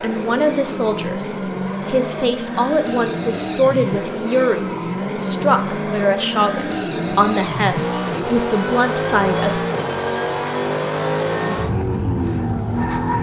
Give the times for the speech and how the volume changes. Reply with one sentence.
You can hear the speech from 0.0 to 9.6 s, at a steady volume.